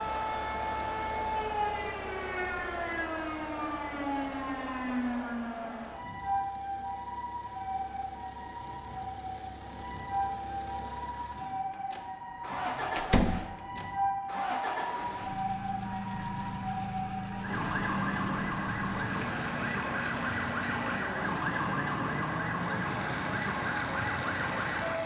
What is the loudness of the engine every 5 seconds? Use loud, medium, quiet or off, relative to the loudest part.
medium, quiet, loud, loud, loud.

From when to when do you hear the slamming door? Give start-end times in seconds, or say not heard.
12.9-13.5.